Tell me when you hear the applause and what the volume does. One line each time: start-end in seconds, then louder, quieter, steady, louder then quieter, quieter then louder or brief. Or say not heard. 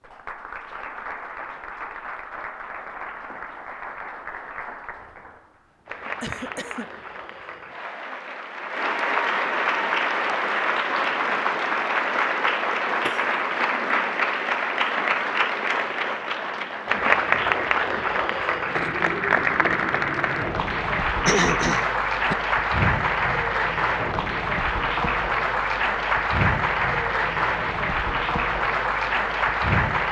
0.0-30.0 louder.